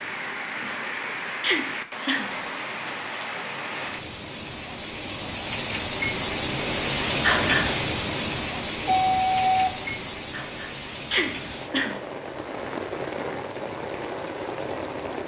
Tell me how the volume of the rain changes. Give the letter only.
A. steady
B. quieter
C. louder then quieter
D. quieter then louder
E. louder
C.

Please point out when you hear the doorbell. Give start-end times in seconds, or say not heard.
8.8-9.7.